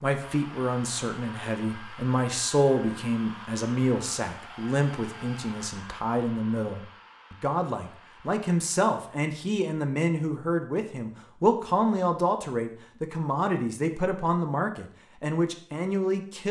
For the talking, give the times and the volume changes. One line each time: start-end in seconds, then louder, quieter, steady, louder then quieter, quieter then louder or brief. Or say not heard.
0.0-16.4 steady.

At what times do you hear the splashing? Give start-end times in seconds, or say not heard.
not heard.